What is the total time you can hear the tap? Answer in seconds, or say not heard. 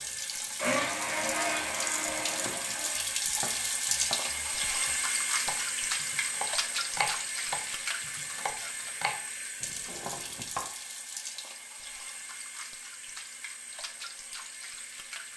15 s.